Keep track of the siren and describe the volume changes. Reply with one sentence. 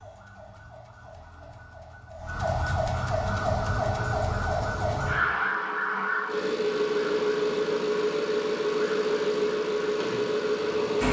The volume of the siren goes up, then down.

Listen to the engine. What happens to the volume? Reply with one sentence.
The loudness of the engine goes up.